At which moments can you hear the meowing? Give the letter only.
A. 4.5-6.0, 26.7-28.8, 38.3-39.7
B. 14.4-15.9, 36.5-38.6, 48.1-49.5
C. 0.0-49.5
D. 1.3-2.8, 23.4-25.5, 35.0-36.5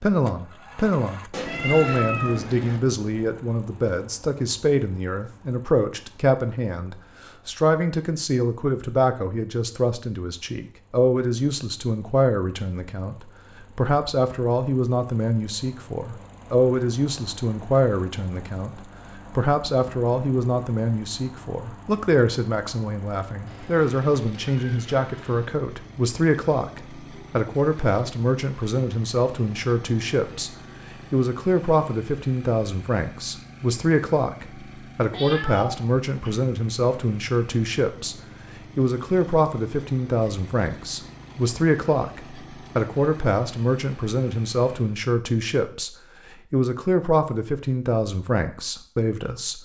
D.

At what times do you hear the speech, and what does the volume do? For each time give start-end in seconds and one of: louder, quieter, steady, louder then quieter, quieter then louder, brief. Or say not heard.
0.0-49.5 steady.